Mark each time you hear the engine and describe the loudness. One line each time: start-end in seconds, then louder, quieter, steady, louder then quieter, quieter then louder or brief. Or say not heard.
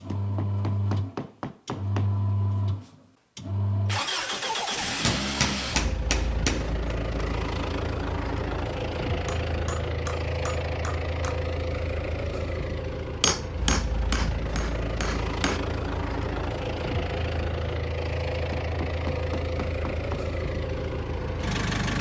0.0-21.9 steady.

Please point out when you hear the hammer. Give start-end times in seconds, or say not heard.
0.1-2.1, 5.0-7.0, 9.1-11.4, 13.2-15.6, 18.5-20.2.